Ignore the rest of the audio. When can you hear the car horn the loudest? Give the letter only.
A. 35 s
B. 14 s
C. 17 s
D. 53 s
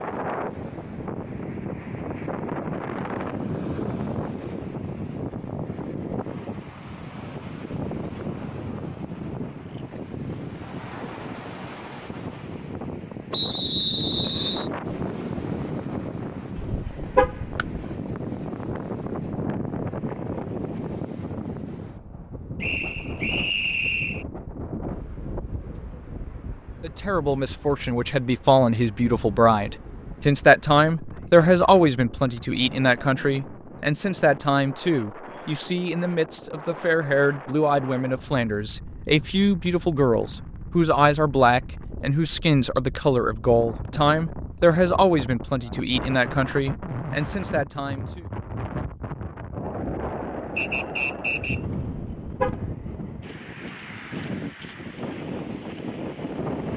C.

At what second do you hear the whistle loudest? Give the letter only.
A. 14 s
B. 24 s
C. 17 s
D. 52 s
A.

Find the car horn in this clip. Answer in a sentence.
You can hear the car horn from 16.6 to 17.9 s and from 51.9 to 52.7 s.